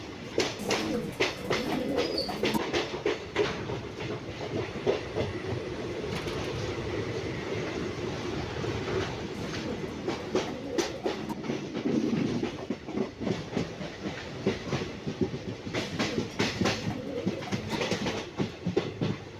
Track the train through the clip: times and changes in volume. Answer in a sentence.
You can hear the train from 0.0 to 19.3 s, at a steady volume.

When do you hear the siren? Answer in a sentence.
You can't hear the siren here.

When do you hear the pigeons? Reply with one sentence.
You can hear the pigeons from 0.6 to 2.6 s, from 9.3 to 11.3 s and from 15.8 to 17.8 s.